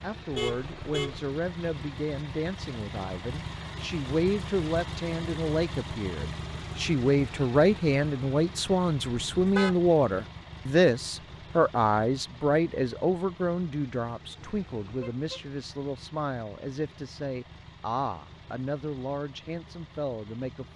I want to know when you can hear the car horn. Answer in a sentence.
You can hear the car horn from 0.3 to 1.2 s, from 9.1 to 9.8 s and from 14.4 to 15.5 s.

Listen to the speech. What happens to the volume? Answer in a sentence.
The volume of the speech goes up, then down.